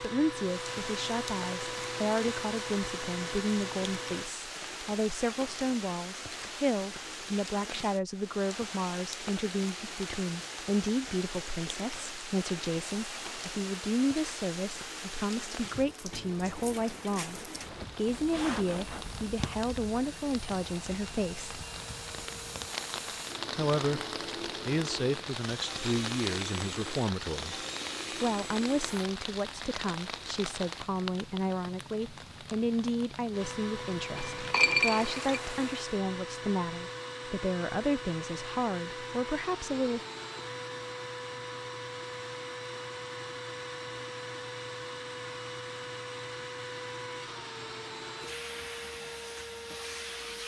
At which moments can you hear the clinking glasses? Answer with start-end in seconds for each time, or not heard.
34.1-35.4.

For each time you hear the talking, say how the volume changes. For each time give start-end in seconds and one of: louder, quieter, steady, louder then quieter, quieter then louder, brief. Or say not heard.
0.0-21.6 steady
23.6-24.0 brief
24.6-27.6 brief
28.2-40.0 steady.